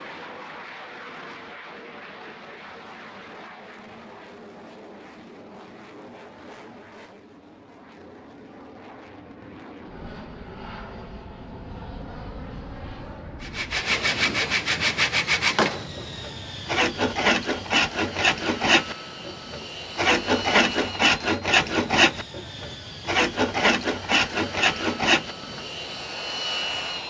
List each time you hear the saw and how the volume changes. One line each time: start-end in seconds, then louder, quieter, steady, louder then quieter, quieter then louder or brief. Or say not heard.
13.4-25.6 steady.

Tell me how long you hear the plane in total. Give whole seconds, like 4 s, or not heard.
27 s.